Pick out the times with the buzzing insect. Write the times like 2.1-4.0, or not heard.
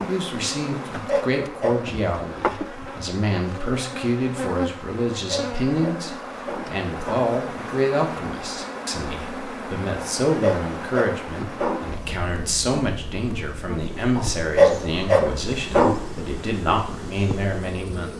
0.0-18.1.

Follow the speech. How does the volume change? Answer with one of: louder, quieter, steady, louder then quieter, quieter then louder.
steady.